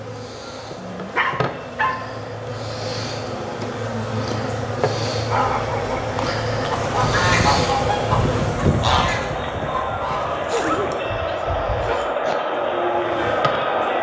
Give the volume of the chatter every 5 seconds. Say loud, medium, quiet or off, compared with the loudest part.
quiet, medium, loud.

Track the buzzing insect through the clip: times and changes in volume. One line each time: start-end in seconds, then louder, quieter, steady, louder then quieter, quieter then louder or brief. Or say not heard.
0.0-8.7 louder
12.3-13.9 brief.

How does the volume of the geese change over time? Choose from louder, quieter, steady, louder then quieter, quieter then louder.
quieter.